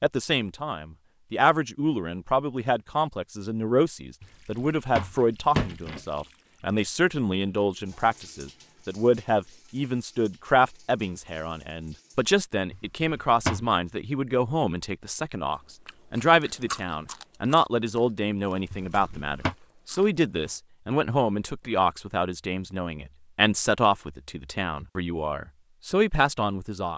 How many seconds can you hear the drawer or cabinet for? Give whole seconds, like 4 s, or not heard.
4 s.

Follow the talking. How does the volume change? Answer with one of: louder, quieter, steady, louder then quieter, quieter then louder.
steady.